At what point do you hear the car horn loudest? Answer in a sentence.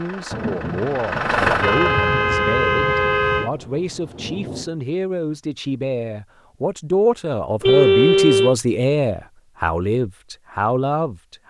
The volume of the car horn peaks at 8 seconds.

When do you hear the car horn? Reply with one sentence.
The car horn can be heard from 1.6 to 3.5 s and from 7.6 to 8.6 s.